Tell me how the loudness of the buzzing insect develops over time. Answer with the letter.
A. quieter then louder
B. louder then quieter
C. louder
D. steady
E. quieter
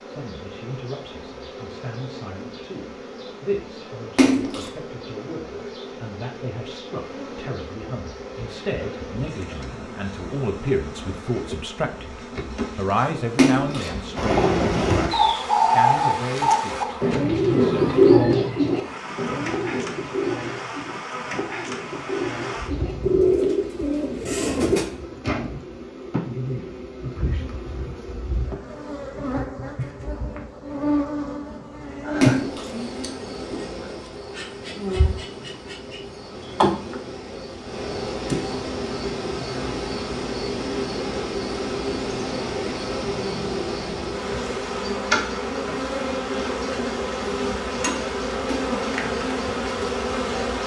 C.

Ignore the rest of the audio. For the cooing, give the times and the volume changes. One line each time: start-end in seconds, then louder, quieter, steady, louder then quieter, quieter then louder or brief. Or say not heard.
14.2-24.9 quieter then louder.